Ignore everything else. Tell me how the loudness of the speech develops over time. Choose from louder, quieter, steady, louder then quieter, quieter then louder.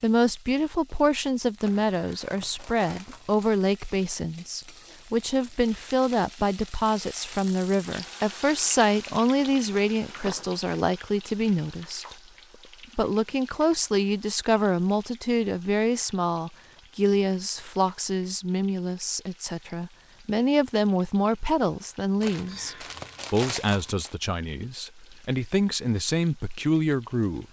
steady.